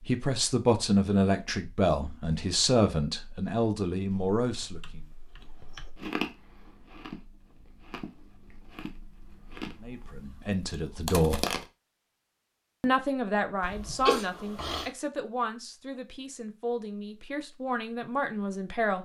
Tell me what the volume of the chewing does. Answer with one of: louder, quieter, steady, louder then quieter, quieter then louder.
quieter then louder.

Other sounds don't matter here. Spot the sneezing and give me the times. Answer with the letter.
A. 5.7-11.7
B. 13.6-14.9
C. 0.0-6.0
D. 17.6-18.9
B.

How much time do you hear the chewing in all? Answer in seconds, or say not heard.
6 s.